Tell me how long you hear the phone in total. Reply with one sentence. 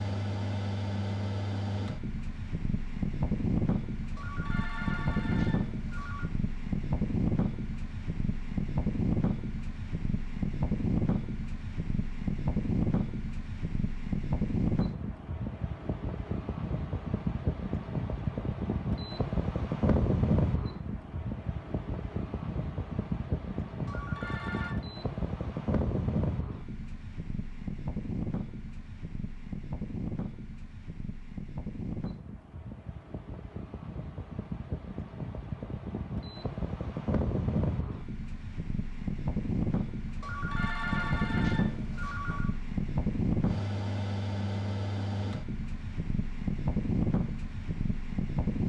The phone can be heard for 5 seconds in total.